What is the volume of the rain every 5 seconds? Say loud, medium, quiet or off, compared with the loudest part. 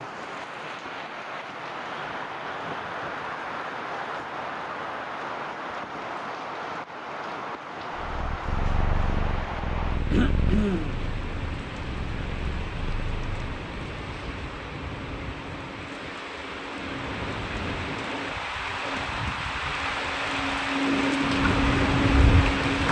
medium, medium, quiet, medium, loud.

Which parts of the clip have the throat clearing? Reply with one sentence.
You can hear the throat clearing from 10.1 to 11.1 s.